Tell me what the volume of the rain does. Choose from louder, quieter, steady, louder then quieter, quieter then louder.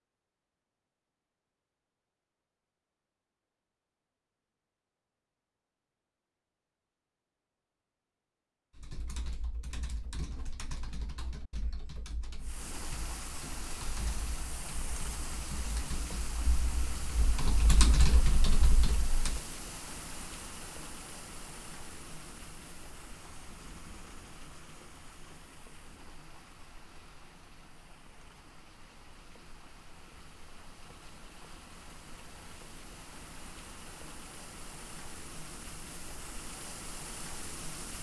quieter then louder.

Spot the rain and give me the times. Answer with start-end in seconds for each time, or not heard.
12.4-37.9.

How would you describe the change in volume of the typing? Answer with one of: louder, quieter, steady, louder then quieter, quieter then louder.
louder.